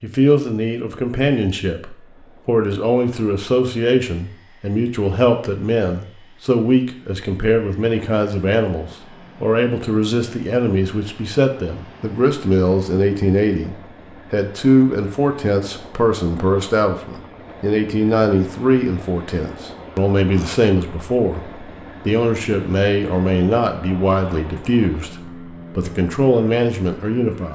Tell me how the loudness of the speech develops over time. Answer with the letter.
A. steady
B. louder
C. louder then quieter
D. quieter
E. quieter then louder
A.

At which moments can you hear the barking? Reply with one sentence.
You can't hear the barking here.